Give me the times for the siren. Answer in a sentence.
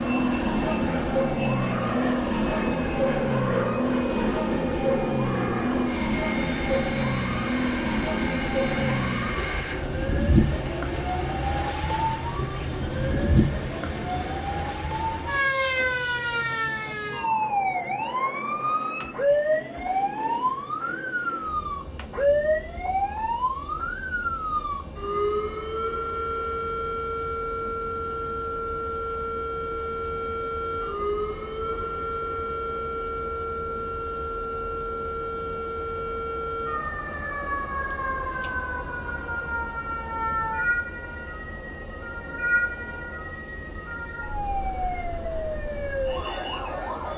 The siren can be heard from 0.0 to 47.1 s.